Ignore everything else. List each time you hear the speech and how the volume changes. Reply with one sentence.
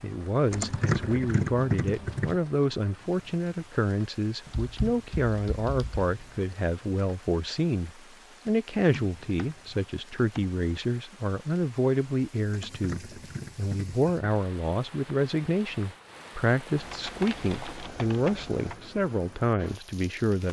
You can hear the speech from 0.0 to 20.4 s, at a steady volume.